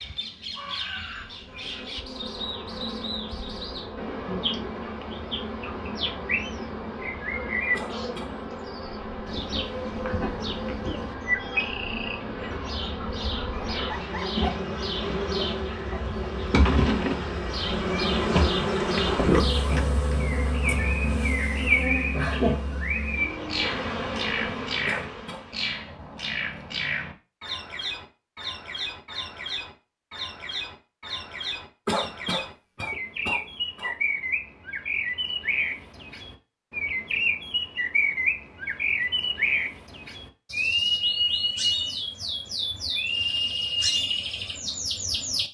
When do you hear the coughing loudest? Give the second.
32 s.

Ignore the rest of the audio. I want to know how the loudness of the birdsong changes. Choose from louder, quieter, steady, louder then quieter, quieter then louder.
louder.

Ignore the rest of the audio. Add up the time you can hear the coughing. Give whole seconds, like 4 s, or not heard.
3 s.